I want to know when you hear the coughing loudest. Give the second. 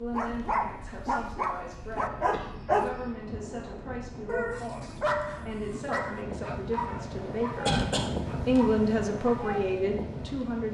8 s.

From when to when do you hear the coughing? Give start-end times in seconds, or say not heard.
1.1-3.1, 7.7-8.6.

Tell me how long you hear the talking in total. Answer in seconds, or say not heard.
10 s.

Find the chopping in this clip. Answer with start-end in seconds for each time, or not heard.
not heard.